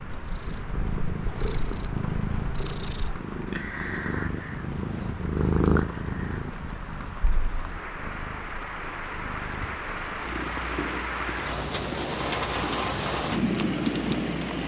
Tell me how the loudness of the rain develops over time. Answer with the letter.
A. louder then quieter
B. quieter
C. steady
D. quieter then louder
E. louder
E.